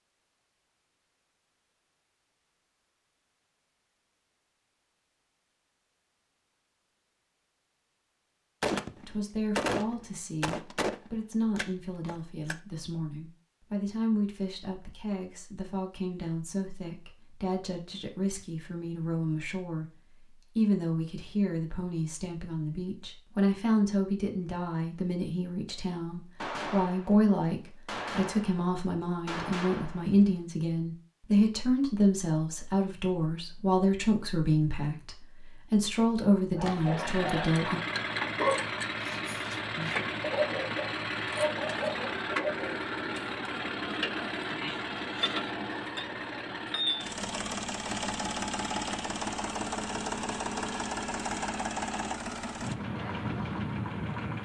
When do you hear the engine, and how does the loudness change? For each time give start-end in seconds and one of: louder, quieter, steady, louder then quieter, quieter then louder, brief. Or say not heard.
36.7-54.3 steady.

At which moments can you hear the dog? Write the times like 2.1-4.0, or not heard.
36.5-42.8.